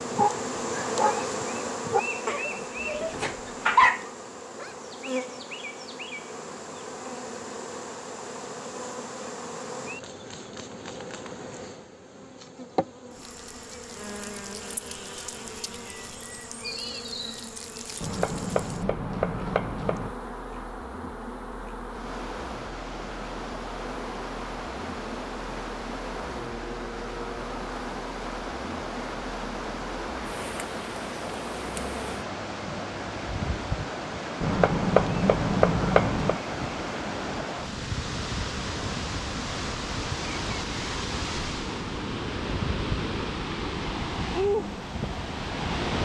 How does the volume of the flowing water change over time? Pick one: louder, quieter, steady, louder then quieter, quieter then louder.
louder.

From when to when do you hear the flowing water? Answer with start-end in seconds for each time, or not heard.
21.9-46.0.